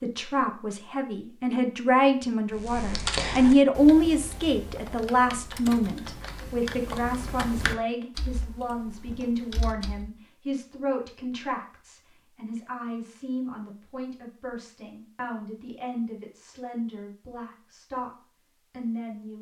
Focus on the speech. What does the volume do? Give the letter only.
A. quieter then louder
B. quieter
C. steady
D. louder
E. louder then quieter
B.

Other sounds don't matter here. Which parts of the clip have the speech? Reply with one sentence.
You can hear the speech from 0.0 to 19.3 s.